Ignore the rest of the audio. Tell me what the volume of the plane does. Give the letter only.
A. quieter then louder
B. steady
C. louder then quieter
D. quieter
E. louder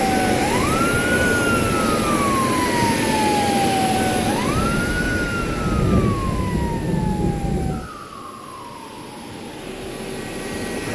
D.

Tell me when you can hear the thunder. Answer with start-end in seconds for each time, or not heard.
4.5-7.9.